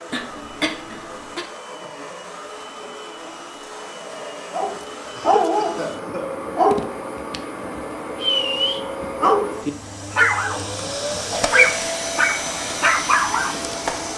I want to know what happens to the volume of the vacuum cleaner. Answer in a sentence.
The volume of the vacuum cleaner goes up.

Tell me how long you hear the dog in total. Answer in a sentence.
The dog can be heard for 9 seconds in total.